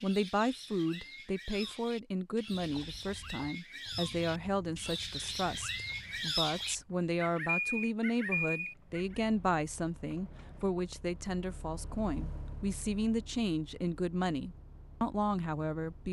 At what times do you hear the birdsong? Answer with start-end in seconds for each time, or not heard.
0.0-9.1.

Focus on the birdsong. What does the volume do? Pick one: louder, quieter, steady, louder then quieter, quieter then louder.
louder.